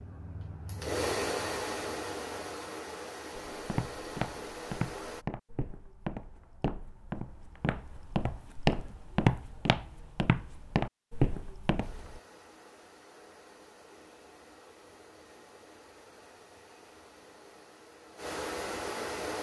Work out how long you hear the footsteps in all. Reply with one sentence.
The footsteps can be heard for 9 seconds in total.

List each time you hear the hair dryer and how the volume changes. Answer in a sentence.
You can hear the hair dryer from 0.0 to 5.2 s, getting quieter; and from 11.8 to 19.3 s, getting louder.